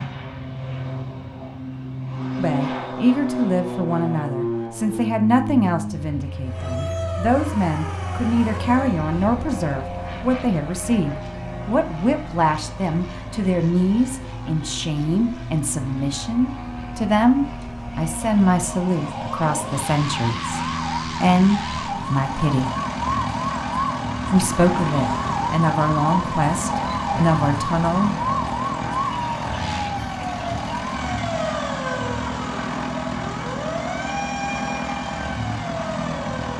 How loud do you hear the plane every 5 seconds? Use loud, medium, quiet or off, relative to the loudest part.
loud, medium, medium, medium, loud, loud, loud, loud.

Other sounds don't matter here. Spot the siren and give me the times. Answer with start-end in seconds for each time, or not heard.
6.5-36.5.